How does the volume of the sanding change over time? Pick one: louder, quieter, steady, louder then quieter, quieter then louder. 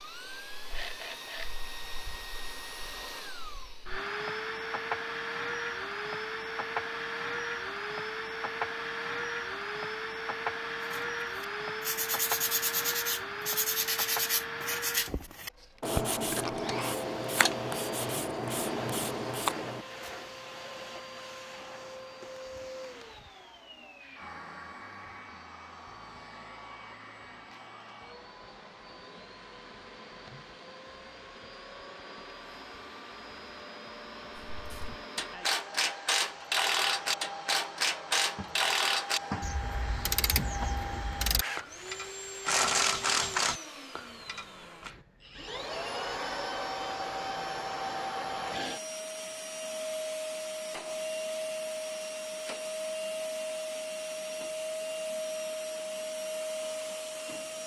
steady.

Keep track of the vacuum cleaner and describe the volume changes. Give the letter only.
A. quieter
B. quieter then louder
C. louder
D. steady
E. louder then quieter
B.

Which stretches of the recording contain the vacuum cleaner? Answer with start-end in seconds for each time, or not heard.
0.0-57.6.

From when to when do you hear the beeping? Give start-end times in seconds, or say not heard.
not heard.